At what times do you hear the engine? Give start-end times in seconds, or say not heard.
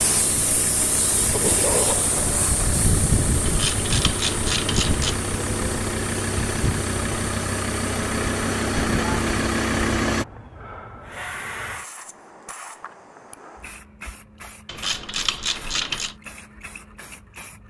0.0-10.2.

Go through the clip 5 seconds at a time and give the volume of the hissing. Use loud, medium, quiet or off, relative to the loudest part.
loud, medium, quiet, quiet.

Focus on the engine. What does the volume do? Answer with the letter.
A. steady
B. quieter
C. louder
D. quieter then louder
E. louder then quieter
C.